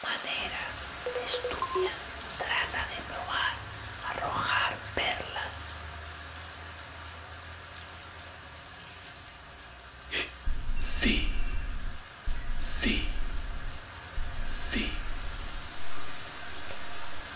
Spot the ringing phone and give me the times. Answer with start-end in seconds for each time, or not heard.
1.1-1.9, 10.8-11.8.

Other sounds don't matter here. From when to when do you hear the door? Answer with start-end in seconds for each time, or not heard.
not heard.